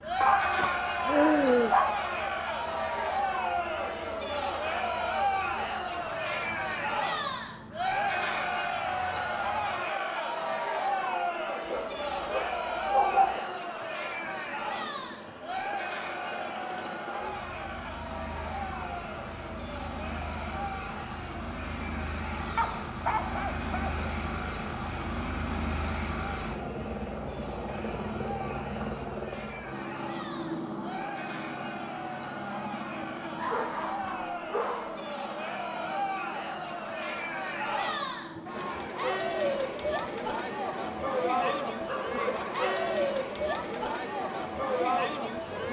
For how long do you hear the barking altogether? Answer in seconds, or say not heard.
8 s.